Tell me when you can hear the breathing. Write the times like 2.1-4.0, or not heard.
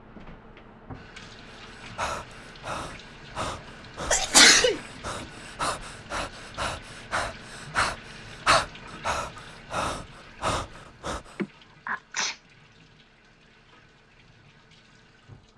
1.5-11.4.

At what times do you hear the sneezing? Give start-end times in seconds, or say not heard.
4.0-4.8, 11.3-12.4.